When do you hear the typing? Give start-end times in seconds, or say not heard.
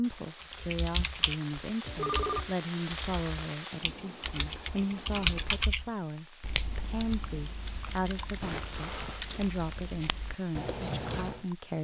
0.4-11.4.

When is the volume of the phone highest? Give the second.
2 s.